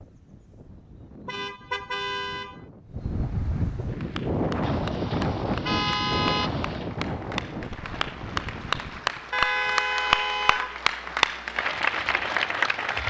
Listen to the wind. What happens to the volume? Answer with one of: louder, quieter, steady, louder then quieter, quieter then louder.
louder then quieter.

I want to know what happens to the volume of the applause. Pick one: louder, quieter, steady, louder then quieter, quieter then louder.
louder.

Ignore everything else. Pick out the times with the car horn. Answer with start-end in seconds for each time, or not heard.
1.2-2.6, 4.6-6.9, 9.3-10.8.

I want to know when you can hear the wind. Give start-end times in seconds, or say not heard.
0.0-9.3.